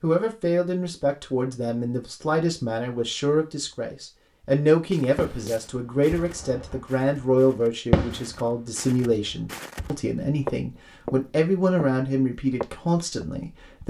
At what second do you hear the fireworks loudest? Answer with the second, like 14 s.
8 s.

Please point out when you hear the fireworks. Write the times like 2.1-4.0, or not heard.
5.2-6.8, 7.9-10.1.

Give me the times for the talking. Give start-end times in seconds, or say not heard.
0.0-13.8.